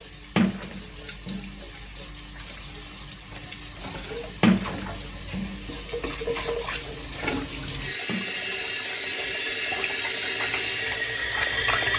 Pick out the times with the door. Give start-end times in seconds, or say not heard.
0.3-1.5, 4.4-5.6, 8.1-8.6.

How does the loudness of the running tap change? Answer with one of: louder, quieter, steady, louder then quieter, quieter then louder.
louder.